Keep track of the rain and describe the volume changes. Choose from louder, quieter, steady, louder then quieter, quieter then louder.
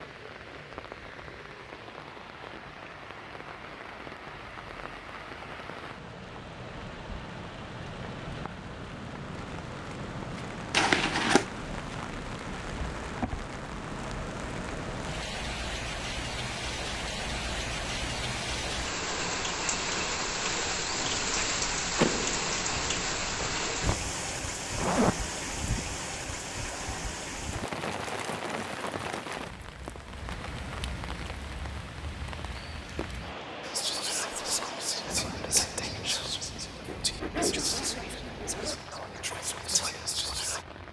louder then quieter.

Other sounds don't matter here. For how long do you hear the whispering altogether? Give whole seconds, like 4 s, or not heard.
7 s.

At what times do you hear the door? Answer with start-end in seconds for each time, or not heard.
21.9-22.8.